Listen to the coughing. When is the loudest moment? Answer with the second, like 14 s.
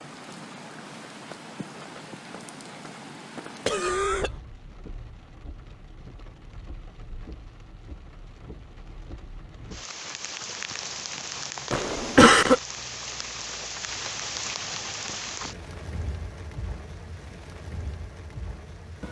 12 s.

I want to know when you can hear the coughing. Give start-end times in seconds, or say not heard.
3.6-4.3, 11.7-12.6.